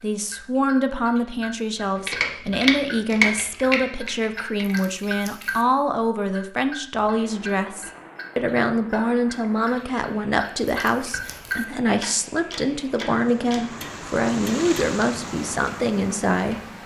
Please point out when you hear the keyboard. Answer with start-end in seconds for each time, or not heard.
2.0-5.5.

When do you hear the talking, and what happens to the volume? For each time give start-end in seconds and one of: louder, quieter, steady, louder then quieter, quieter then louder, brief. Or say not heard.
0.0-16.6 steady.